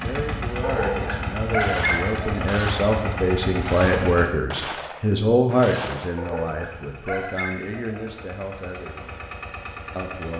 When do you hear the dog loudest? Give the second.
2 s.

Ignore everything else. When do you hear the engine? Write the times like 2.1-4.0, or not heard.
0.0-4.3, 6.2-10.3.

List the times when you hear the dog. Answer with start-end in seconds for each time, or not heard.
0.6-2.4, 6.2-8.1.